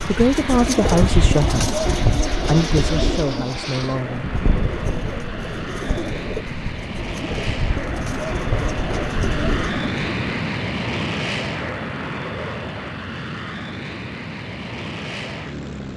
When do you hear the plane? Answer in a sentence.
You can hear the plane from 0.0 to 15.9 s.